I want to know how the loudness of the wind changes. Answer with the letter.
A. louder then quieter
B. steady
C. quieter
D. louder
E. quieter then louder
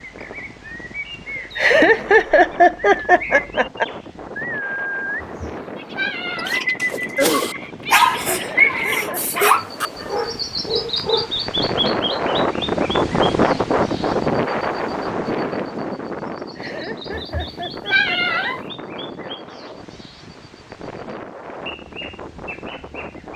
A.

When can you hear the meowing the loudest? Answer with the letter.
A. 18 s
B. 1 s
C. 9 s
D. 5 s
A.